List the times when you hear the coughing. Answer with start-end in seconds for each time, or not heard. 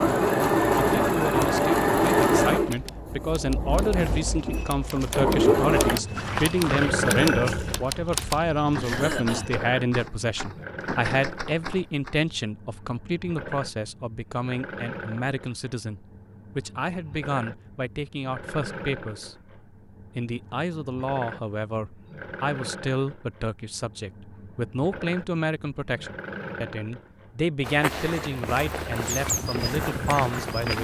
8.8-9.4.